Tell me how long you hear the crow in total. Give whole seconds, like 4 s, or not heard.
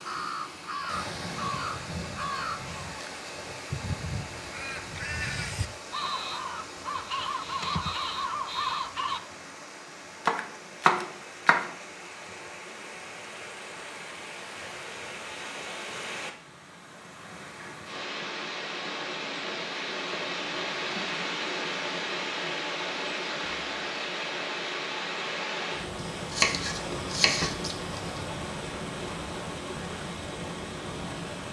9 s.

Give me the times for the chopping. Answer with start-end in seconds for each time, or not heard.
10.2-11.8, 25.9-28.2.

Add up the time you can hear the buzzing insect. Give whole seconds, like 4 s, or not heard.
not heard.